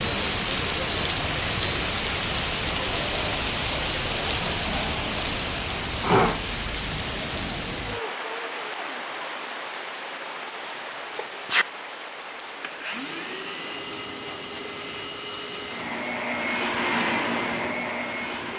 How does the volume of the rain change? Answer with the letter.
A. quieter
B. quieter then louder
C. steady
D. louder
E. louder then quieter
A.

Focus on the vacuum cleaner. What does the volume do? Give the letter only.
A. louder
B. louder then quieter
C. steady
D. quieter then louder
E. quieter
A.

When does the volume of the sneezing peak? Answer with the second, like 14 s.
6 s.